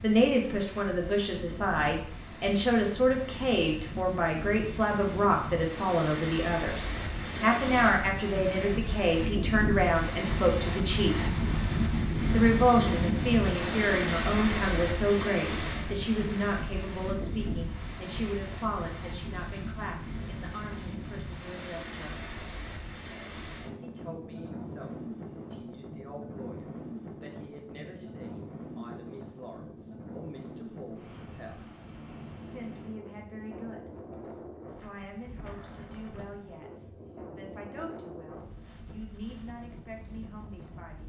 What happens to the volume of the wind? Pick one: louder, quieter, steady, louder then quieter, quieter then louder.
louder then quieter.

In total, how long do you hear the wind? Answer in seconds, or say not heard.
41 s.